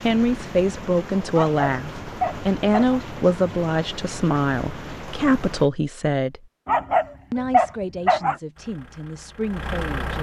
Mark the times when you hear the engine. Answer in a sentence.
You can hear the engine from 8.6 to 10.1 s.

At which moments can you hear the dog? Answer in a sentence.
The dog can be heard from 1.3 to 3.0 s and from 6.7 to 8.3 s.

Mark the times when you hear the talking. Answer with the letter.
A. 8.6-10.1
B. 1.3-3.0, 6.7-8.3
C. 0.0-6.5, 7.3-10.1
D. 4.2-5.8
C.